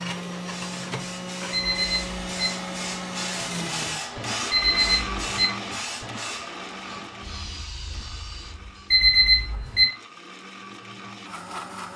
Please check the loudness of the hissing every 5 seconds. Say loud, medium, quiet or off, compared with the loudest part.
loud, loud, off.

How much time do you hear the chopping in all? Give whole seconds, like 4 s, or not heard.
not heard.